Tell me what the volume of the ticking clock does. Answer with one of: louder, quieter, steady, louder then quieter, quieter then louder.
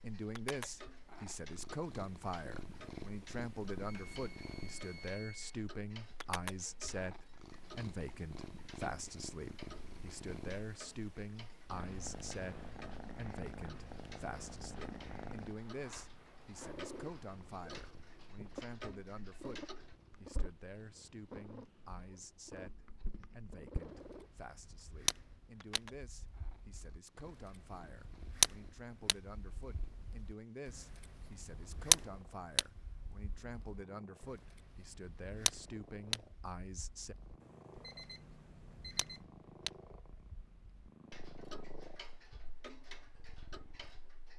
louder then quieter.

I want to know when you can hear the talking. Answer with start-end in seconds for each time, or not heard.
0.0-37.1.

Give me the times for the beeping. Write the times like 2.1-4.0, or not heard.
3.9-5.5, 37.4-39.2.